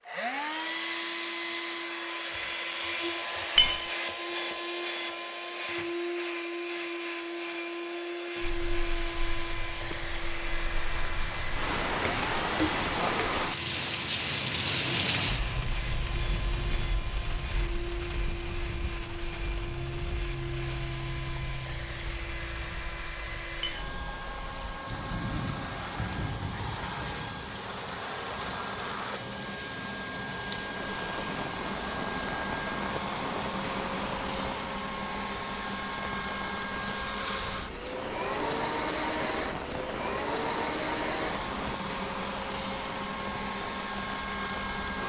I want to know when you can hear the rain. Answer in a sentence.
You can hear the rain from 8.4 to 45.0 s.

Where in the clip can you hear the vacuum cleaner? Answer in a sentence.
The vacuum cleaner can be heard from 0.0 to 45.0 s.